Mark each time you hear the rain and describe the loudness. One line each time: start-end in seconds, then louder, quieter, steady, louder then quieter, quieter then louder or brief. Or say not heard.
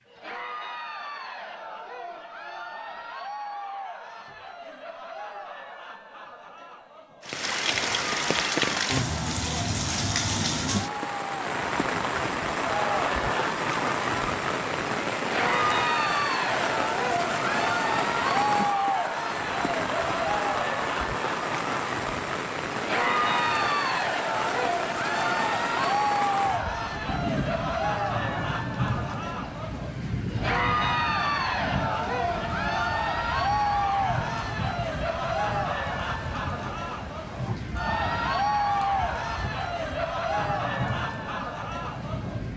7.2-42.5 quieter.